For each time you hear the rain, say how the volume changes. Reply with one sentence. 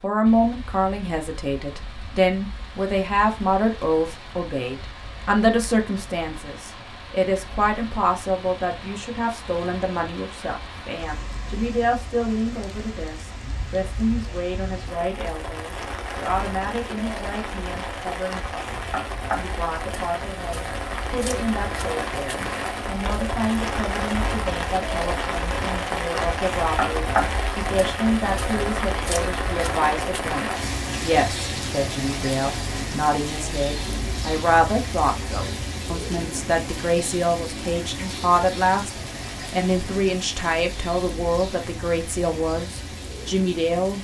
You can hear the rain from 0.0 to 43.9 s, getting louder then quieter.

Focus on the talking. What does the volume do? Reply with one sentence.
The loudness of the talking goes down, then up.